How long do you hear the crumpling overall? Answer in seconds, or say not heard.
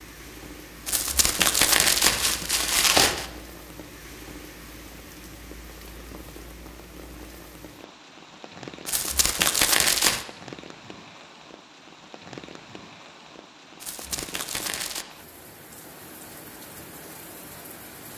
5 s.